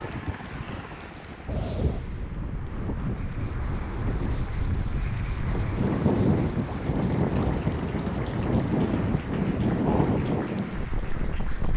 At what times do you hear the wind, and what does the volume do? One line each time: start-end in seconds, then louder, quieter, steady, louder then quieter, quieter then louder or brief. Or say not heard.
0.0-11.7 louder.